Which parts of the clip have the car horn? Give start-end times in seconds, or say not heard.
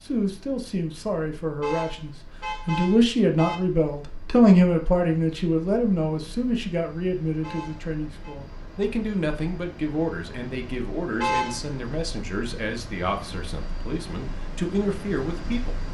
1.6-3.6, 7.4-8.3, 11.2-11.6.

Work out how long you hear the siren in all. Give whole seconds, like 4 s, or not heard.
not heard.